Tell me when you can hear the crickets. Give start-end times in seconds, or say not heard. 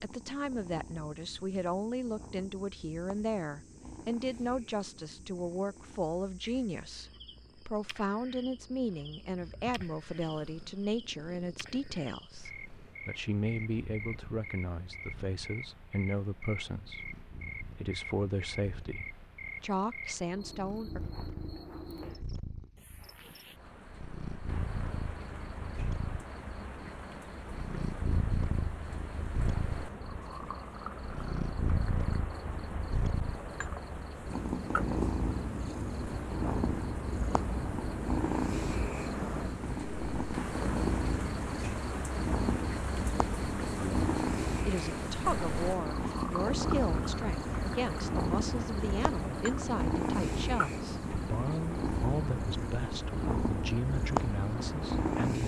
0.0-55.3.